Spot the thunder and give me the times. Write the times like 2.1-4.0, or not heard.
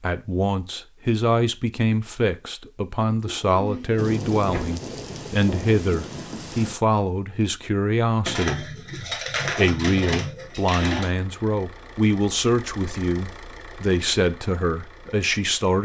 4.0-6.8.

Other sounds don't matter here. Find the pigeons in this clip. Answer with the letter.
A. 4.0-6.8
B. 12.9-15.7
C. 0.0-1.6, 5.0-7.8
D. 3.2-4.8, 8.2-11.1
D.